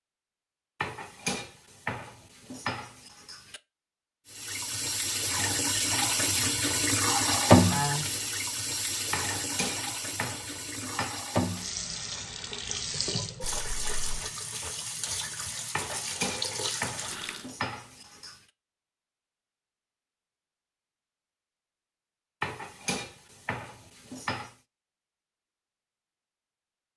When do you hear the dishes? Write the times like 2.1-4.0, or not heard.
0.8-3.6, 9.1-11.2, 15.7-18.4, 22.4-24.6.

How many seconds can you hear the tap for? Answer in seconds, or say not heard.
13 s.